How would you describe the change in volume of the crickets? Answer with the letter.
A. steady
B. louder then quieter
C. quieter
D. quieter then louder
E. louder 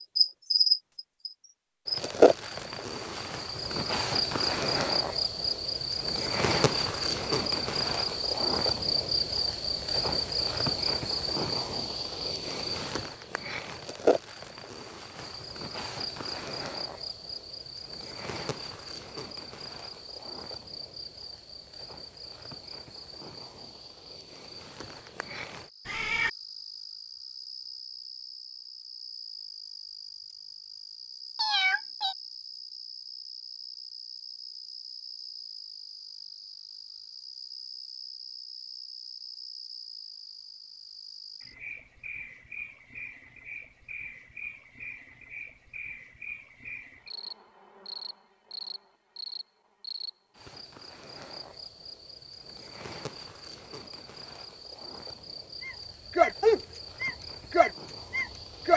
C.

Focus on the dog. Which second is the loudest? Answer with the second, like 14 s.
56 s.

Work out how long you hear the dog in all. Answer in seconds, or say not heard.
3 s.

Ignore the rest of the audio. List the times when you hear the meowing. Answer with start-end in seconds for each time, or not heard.
25.9-26.3, 31.4-32.1.